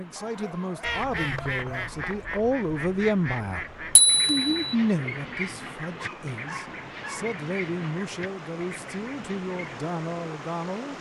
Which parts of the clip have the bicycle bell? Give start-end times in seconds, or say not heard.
4.0-4.8.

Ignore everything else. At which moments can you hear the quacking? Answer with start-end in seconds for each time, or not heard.
0.8-9.8.